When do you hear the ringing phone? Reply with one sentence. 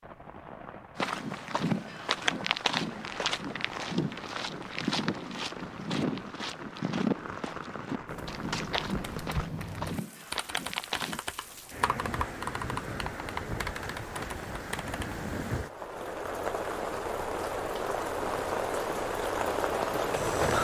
The ringing phone can't be heard in this clip.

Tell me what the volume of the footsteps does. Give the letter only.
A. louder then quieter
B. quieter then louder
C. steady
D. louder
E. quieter
E.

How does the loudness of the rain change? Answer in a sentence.
The volume of the rain goes up.